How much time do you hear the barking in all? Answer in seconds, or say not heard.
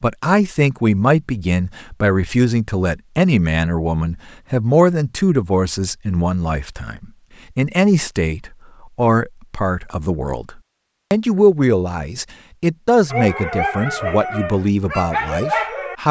3 s.